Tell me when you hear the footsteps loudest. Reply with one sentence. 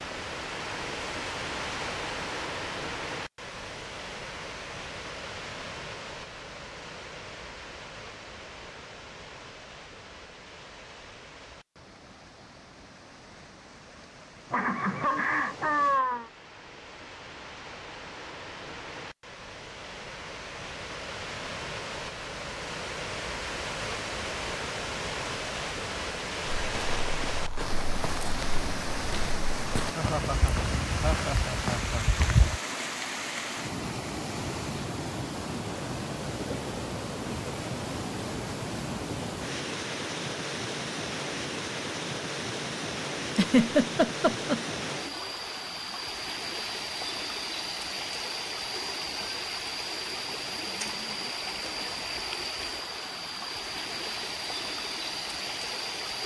The volume of the footsteps peaks at 32 seconds.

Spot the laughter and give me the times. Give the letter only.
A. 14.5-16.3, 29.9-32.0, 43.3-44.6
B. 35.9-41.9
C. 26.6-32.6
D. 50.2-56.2
A.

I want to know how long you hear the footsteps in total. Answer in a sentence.
You can hear the footsteps for 6 seconds altogether.